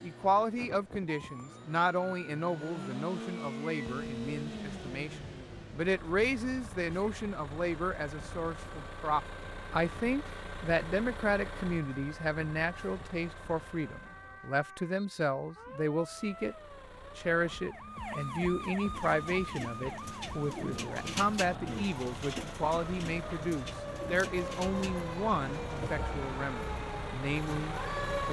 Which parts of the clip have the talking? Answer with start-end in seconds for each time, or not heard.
0.0-16.6, 17.1-28.2.